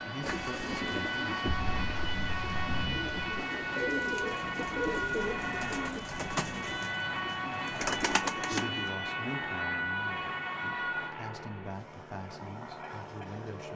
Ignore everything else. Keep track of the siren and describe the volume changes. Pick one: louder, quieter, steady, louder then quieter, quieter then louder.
quieter.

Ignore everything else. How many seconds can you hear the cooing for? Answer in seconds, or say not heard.
9 s.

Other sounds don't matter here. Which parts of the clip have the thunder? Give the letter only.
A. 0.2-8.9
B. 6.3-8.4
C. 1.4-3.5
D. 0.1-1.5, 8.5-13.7
C.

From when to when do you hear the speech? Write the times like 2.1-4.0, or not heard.
0.1-1.5, 8.5-13.7.